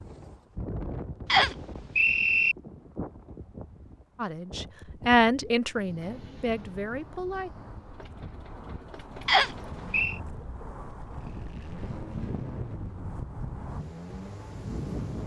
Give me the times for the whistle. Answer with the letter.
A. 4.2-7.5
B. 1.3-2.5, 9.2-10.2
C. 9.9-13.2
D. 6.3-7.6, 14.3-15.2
B.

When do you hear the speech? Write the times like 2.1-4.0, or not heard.
4.2-7.5.